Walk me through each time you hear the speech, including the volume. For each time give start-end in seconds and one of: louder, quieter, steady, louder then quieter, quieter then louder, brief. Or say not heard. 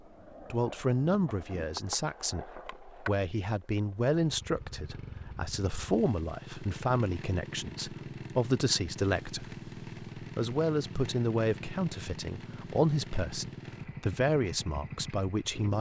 0.4-15.7 steady.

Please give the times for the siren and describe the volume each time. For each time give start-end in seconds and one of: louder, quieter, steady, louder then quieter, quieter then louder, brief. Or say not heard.
not heard.